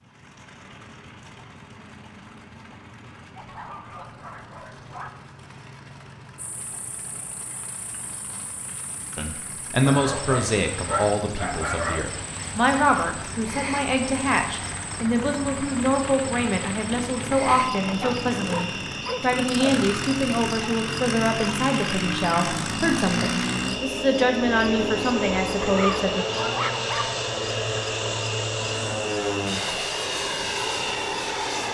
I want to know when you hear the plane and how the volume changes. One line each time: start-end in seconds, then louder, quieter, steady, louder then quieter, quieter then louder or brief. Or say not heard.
0.0-31.6 louder.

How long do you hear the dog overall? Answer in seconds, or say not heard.
7 s.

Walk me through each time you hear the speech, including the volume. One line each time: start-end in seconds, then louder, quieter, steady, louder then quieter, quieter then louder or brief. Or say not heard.
9.2-26.2 steady.